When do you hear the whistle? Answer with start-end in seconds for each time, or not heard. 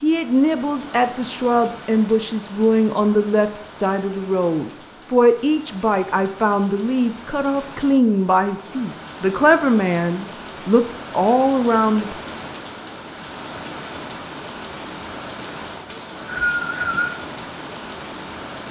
15.9-17.1.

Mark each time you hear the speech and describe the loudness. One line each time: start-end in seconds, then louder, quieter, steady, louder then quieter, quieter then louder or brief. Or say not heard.
0.0-12.2 steady.